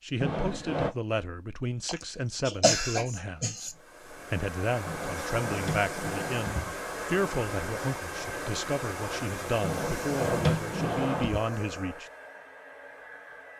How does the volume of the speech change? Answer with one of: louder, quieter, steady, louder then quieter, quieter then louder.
steady.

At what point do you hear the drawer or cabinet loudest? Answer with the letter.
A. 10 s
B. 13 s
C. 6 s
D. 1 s
A.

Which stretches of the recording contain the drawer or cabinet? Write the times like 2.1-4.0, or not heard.
0.2-0.9, 4.8-6.8, 9.6-11.4.